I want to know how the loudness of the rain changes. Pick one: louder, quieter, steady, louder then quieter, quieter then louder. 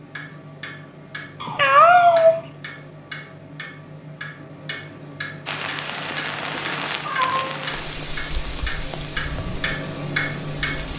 quieter.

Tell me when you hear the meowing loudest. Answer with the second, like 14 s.
2 s.